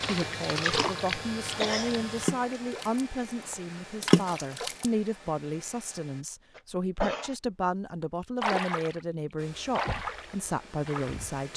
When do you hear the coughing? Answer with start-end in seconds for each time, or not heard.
1.6-2.0, 6.5-7.3.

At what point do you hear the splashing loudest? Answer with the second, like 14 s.
4 s.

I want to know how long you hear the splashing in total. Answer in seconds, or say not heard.
7 s.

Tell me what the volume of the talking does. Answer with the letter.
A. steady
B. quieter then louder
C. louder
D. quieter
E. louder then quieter
A.